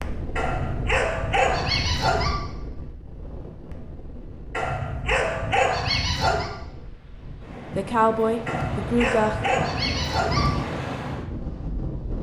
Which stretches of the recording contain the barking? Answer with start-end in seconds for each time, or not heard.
0.3-2.4, 4.5-6.5, 8.4-10.5.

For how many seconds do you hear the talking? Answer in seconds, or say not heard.
2 s.